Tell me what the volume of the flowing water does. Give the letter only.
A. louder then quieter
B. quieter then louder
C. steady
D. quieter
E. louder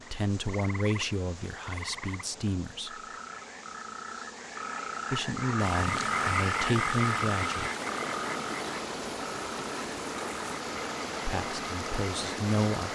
C.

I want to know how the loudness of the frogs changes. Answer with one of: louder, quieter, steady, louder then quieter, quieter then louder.
louder then quieter.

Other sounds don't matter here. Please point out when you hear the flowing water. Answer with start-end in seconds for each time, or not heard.
5.5-12.9.